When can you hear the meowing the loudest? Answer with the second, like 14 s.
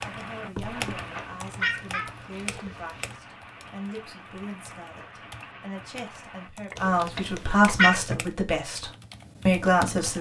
8 s.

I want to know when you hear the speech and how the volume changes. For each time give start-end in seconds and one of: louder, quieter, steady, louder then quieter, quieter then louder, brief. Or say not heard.
0.0-10.1 louder.